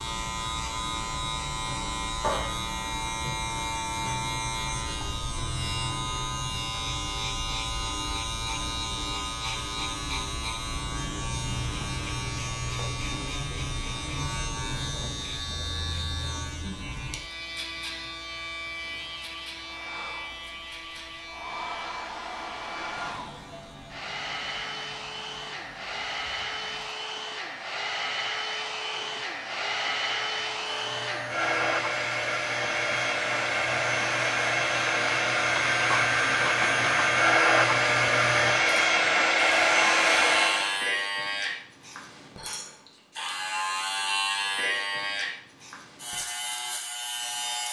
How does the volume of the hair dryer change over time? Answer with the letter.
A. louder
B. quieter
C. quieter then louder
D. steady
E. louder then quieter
A.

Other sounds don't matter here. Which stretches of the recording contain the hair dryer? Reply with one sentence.
You can hear the hair dryer from 19.6 to 40.8 s.